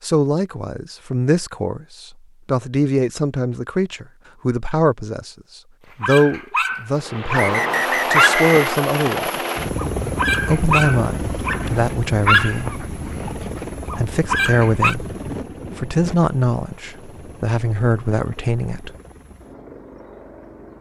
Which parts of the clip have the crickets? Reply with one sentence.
You can't hear the crickets here.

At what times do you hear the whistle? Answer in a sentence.
The whistle can be heard from 7.3 to 8.7 s.